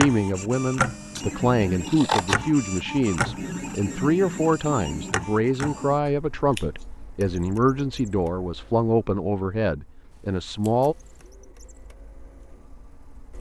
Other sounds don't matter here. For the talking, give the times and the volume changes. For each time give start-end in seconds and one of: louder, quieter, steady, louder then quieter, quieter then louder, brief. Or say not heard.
0.0-10.9 steady.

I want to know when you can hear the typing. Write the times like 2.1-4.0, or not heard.
not heard.